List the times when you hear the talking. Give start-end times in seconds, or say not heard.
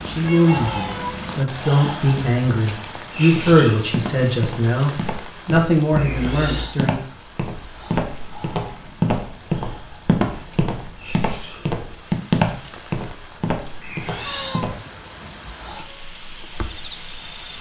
0.0-7.0.